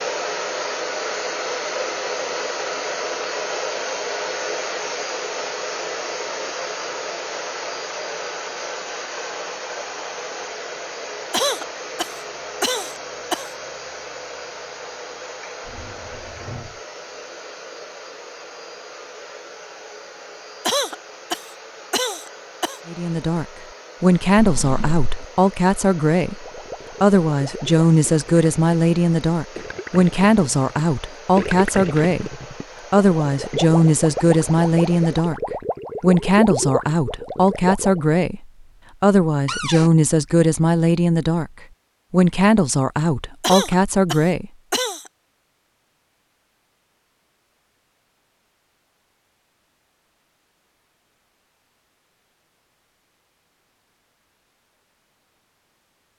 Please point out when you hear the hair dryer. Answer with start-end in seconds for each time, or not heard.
0.0-35.4.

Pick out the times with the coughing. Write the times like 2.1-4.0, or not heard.
11.3-13.5, 20.6-22.8, 43.4-45.1.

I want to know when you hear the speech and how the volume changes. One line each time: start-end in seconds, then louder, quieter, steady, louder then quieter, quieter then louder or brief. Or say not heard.
22.9-35.4 steady
36.0-41.5 steady
42.1-44.5 brief.